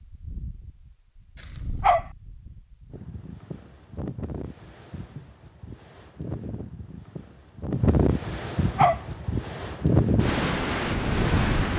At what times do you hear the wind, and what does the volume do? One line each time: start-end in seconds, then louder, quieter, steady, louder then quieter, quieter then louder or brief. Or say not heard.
0.0-11.7 louder.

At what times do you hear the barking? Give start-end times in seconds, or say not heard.
1.4-2.0, 8.3-9.0.